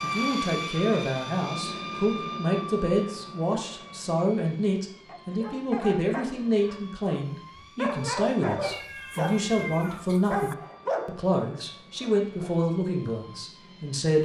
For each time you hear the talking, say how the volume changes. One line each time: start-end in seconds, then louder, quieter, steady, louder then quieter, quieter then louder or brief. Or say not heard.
0.0-14.1 steady.